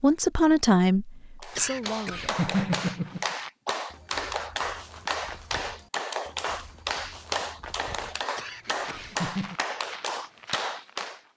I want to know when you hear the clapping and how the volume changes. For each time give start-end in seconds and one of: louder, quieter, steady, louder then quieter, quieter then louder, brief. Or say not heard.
1.4-11.2 steady.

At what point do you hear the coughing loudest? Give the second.
3 s.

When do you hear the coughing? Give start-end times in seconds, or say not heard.
1.6-3.2, 8.3-9.6.